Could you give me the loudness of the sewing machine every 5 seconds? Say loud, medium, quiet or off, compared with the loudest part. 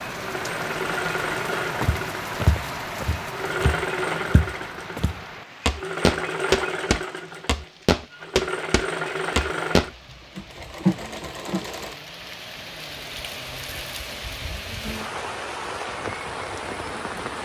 loud, loud, loud, off.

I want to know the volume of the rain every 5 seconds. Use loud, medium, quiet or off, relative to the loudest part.
loud, quiet, medium, loud.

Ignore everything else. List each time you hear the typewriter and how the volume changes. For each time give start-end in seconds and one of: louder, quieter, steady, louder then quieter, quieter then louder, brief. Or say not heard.
not heard.